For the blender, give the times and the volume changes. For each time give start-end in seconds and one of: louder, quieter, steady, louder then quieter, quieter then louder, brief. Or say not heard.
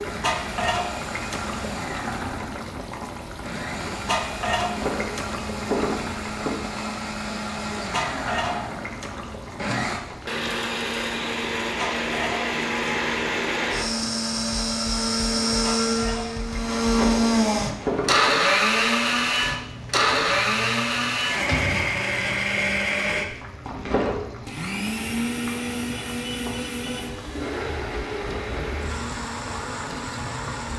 0.0-30.7 louder then quieter.